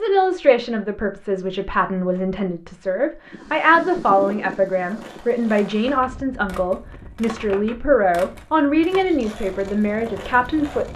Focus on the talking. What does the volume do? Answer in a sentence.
The loudness of the talking stays about the same.